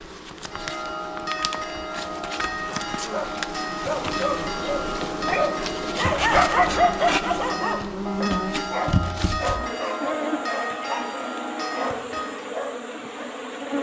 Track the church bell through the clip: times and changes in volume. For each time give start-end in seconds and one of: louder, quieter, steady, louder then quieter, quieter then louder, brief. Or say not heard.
0.5-12.4 steady.